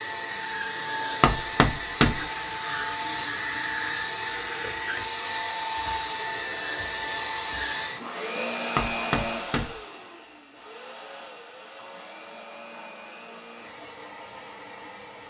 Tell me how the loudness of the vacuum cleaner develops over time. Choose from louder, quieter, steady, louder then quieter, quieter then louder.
quieter.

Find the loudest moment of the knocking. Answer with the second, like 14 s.
2 s.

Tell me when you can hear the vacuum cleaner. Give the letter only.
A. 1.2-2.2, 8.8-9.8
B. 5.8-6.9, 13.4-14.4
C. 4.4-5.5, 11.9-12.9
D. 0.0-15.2
D.